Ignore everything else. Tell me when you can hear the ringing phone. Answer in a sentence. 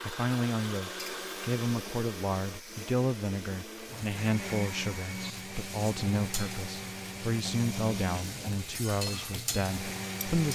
The ringing phone can't be heard in this clip.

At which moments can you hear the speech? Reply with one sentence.
You can hear the speech from 0.0 to 10.4 s.